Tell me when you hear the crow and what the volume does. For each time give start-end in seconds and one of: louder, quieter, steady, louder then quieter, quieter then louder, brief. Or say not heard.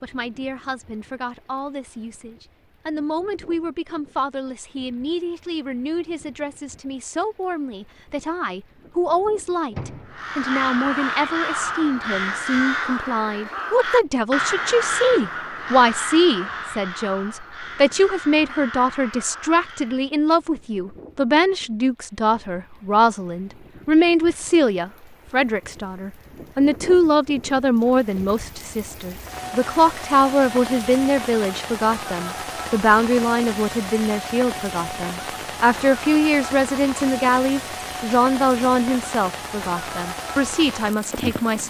10.1-20.1 quieter.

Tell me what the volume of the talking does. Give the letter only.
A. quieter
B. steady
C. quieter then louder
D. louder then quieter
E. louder
E.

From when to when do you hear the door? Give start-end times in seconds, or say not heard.
9.7-10.3.